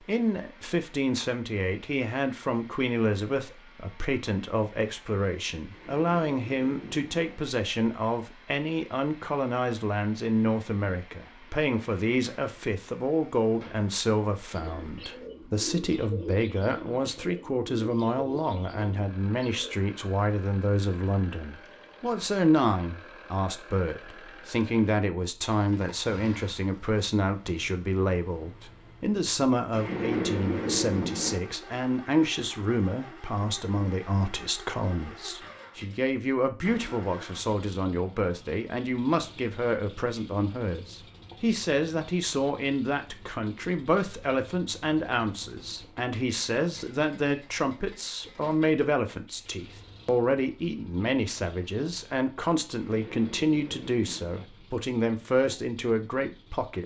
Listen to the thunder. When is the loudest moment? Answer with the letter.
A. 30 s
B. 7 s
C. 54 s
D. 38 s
A.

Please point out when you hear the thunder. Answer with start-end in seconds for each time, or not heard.
5.7-7.3, 29.7-31.4, 52.8-54.4.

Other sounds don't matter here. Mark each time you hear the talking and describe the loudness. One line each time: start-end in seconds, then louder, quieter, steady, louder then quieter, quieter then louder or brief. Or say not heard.
0.1-56.8 steady.